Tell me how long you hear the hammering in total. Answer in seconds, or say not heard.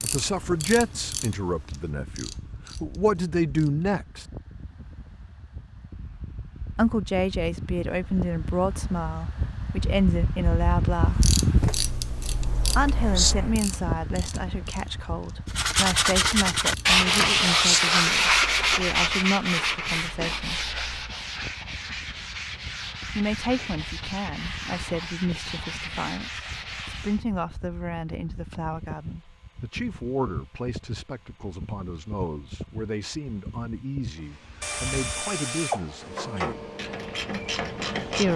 not heard.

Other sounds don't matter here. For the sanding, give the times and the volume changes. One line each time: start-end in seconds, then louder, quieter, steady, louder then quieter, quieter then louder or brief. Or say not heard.
15.4-27.2 quieter.